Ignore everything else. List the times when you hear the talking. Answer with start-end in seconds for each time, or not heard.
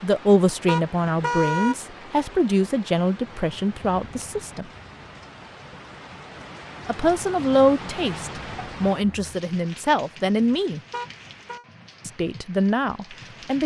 0.0-4.7, 6.8-10.8, 12.1-13.6.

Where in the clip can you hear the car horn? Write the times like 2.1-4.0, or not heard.
0.7-1.8, 10.9-11.7.